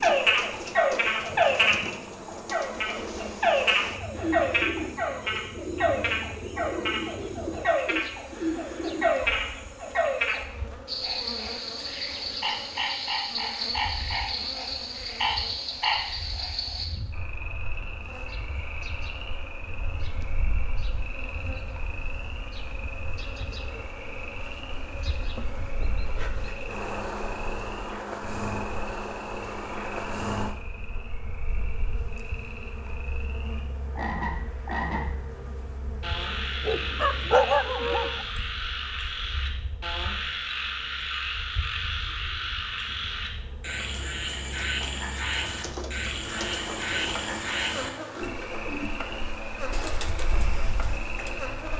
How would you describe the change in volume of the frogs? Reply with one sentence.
The loudness of the frogs goes down, then up.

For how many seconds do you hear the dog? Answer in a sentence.
You can hear the dog for 2 seconds altogether.